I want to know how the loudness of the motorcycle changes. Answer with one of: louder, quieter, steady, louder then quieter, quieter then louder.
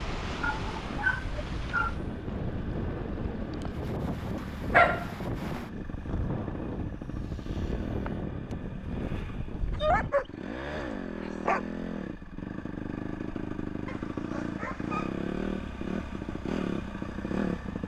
louder.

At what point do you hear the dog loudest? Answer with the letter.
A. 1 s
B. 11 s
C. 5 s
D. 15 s
C.